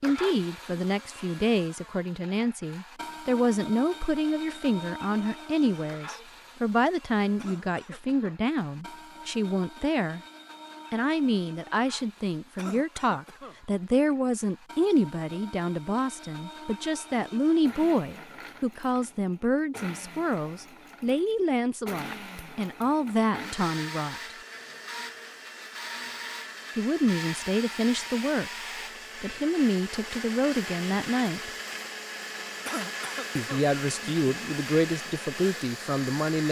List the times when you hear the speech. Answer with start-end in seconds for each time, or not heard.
0.0-10.2, 10.9-24.4, 26.8-28.5, 29.2-31.5, 33.4-36.4.